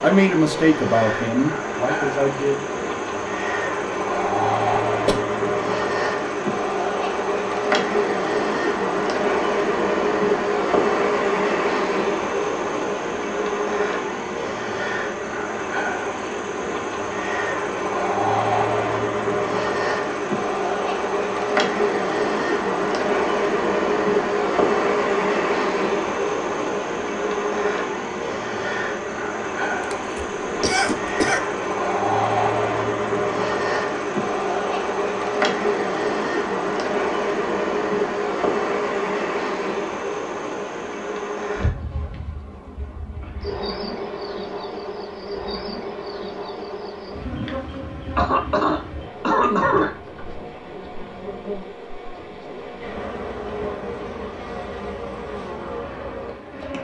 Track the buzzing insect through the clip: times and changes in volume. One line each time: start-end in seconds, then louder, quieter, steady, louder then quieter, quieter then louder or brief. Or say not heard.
0.0-56.7 quieter.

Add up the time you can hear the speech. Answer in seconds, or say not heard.
3 s.